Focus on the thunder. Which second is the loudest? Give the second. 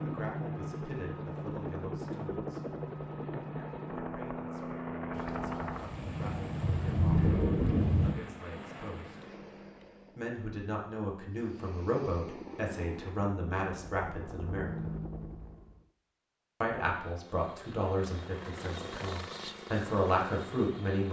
7 s.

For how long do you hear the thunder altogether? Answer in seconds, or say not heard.
3 s.